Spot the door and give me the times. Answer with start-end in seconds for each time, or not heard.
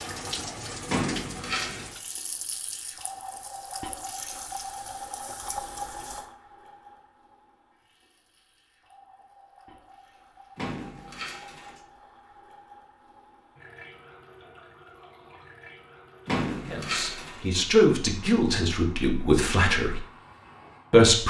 0.8-1.9, 10.6-11.8, 16.2-17.4.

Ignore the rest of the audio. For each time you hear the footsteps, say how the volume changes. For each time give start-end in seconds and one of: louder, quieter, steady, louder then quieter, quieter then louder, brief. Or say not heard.
not heard.